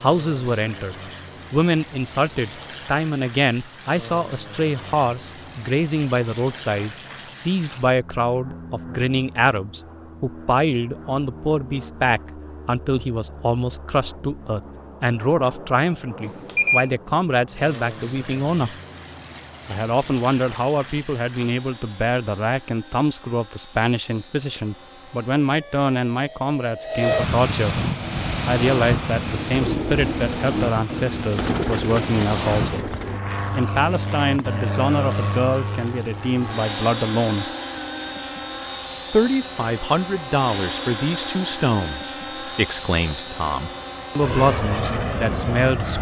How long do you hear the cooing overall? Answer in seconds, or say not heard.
5 s.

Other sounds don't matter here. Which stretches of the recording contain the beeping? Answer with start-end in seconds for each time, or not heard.
16.4-16.9.